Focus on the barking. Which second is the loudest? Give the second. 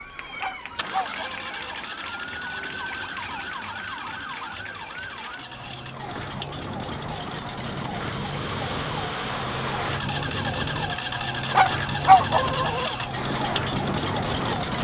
12 s.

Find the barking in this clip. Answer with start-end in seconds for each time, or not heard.
0.4-1.8, 11.5-12.9.